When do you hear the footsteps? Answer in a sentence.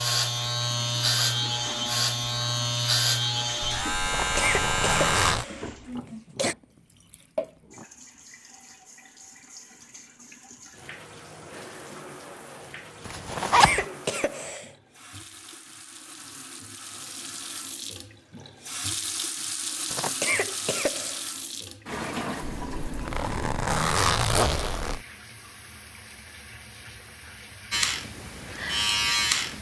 You can't hear the footsteps here.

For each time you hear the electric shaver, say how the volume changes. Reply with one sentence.
You can hear the electric shaver from 0.0 to 5.3 s, at a steady volume; and briefly from 27.7 to 29.5 s.